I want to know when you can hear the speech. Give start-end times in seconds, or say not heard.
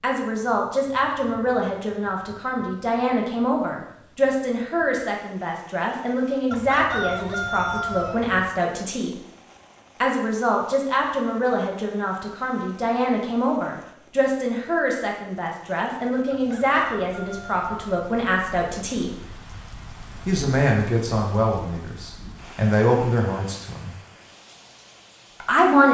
0.0-9.2, 10.0-19.1, 20.2-23.9, 25.4-25.8.